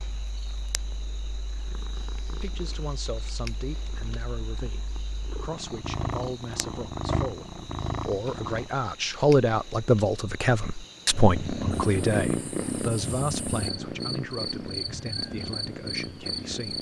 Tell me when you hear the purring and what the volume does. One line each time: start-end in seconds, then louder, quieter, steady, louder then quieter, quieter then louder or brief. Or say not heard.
0.0-8.7 louder
11.1-16.7 quieter.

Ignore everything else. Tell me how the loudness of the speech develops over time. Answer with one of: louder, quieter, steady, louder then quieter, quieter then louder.
louder then quieter.